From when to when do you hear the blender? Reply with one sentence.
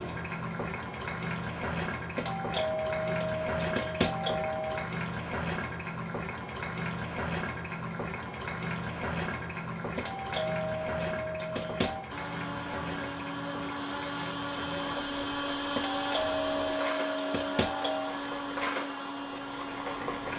You can hear the blender from 12.1 to 20.3 s.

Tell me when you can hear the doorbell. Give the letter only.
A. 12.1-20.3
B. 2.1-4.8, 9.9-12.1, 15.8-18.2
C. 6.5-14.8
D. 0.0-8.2
B.